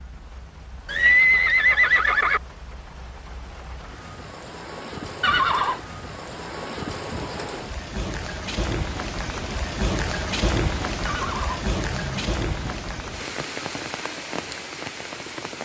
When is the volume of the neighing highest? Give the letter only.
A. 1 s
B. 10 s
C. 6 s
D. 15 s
A.